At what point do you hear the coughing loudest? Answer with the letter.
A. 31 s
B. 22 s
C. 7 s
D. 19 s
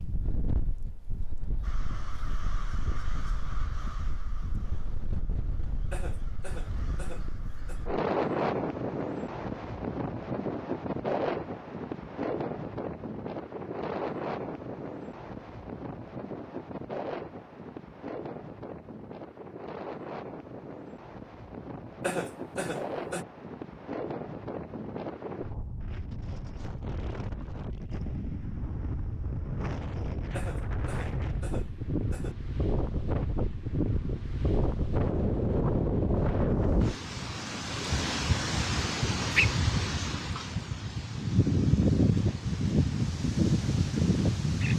B.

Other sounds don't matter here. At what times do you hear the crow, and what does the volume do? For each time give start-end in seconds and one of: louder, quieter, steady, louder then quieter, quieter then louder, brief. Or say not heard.
1.6-7.9 quieter then louder.